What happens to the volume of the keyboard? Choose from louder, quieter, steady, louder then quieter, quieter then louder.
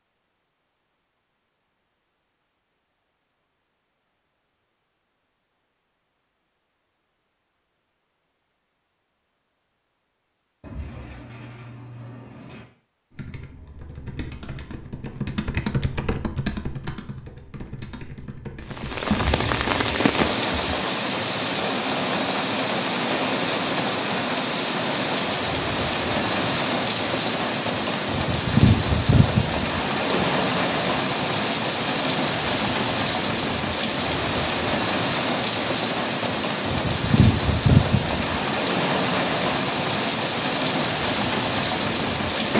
louder then quieter.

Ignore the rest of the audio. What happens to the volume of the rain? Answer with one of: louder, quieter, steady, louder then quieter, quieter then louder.
steady.